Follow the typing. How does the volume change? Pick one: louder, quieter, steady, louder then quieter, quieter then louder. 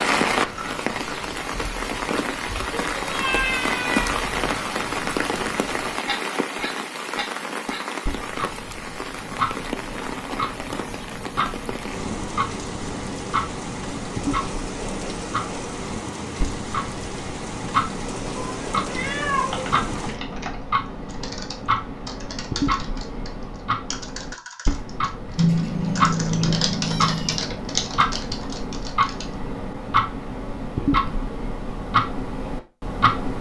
louder.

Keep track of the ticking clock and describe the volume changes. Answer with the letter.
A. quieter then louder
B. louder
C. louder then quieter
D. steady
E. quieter
B.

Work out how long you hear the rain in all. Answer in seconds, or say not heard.
20 s.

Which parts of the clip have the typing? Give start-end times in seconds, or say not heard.
19.5-29.4.